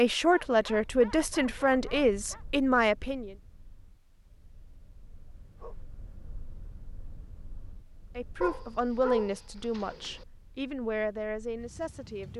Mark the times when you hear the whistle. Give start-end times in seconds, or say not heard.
not heard.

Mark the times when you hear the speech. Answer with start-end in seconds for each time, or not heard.
0.0-3.4, 8.2-12.3.